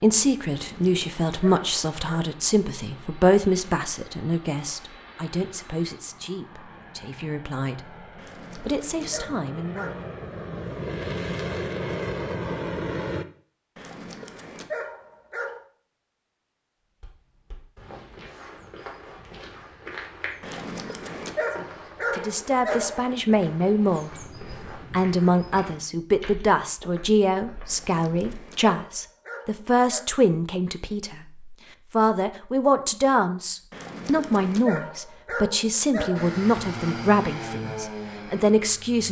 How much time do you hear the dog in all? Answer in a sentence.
You can hear the dog for 13 seconds altogether.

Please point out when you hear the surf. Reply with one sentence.
You can't hear the surf here.